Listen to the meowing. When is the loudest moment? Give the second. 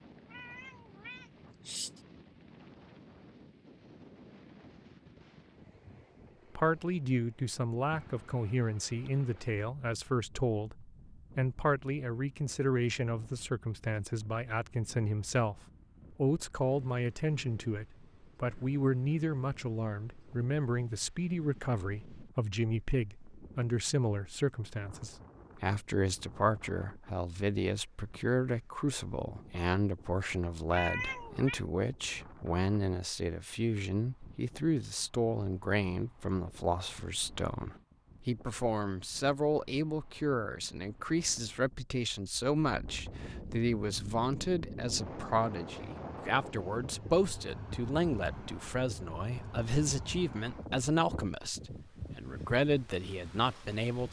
31 s.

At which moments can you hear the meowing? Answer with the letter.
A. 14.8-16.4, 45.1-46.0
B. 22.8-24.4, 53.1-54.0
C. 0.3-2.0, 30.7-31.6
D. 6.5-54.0
C.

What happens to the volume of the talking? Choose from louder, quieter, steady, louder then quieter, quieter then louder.
steady.